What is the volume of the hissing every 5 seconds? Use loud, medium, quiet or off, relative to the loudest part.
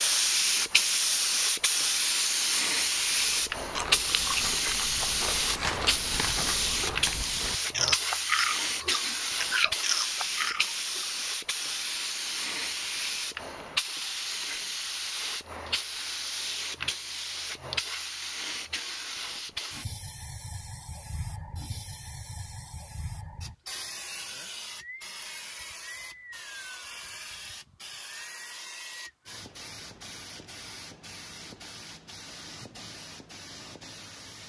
loud, loud, medium, medium, quiet, quiet, quiet.